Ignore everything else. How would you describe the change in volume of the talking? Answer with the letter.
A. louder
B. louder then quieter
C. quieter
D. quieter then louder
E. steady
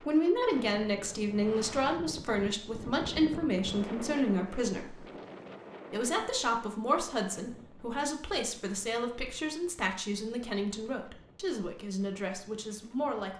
C.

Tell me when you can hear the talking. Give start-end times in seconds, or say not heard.
0.1-5.0, 5.9-13.3.